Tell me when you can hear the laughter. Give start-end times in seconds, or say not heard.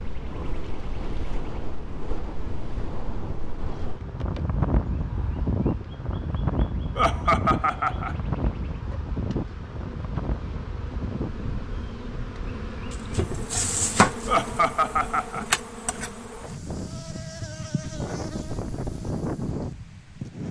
7.0-8.2, 14.2-15.4.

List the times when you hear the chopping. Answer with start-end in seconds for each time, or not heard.
12.9-14.3.